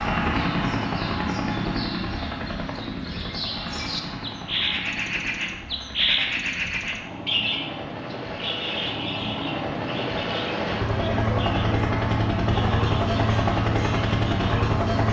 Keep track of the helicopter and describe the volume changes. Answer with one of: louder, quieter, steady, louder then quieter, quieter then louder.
quieter then louder.